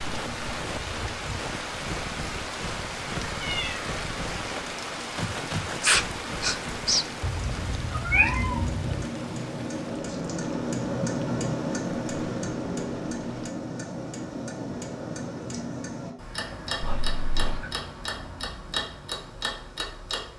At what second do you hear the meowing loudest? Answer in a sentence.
The loudest moment of the meowing is at 8 seconds.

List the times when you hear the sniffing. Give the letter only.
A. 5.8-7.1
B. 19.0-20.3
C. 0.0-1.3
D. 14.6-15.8
A.